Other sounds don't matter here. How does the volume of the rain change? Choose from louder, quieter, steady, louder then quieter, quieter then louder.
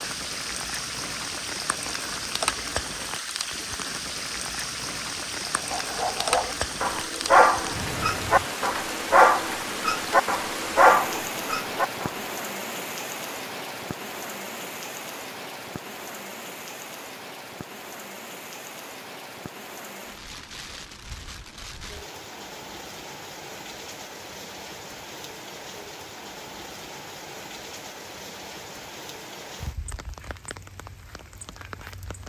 quieter.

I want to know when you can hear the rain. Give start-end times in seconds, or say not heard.
0.0-32.2.